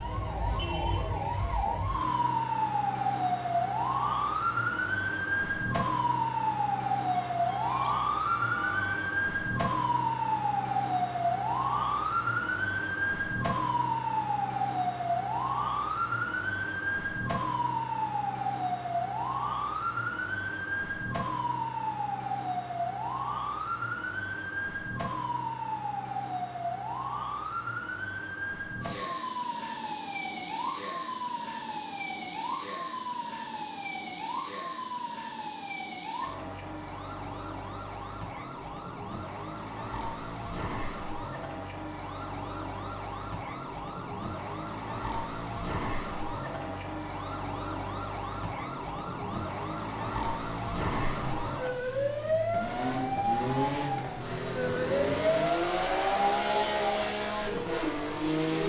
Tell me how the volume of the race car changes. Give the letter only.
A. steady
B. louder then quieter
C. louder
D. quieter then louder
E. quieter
C.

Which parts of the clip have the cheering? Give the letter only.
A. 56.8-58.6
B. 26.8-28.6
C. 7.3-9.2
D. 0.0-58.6
C.